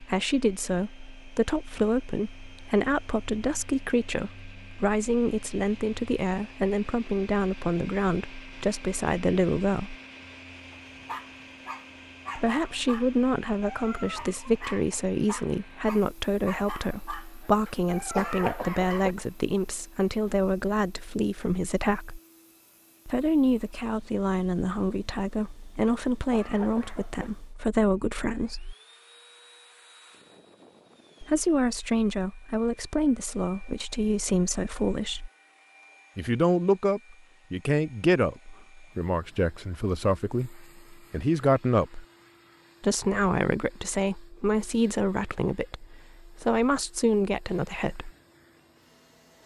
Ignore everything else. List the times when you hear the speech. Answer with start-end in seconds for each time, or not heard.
0.0-9.9, 12.3-22.2, 23.1-28.8, 31.2-35.3, 36.1-42.0, 42.8-48.1.